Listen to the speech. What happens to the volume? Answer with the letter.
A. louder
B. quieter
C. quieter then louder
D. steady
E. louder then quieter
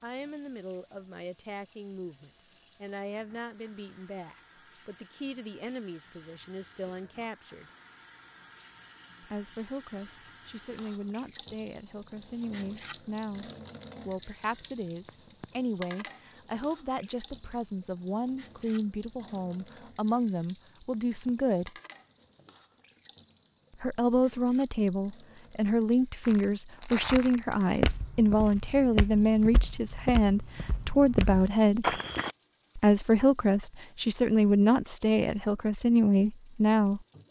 A.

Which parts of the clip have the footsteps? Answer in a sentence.
You can hear the footsteps from 26.2 to 32.4 s.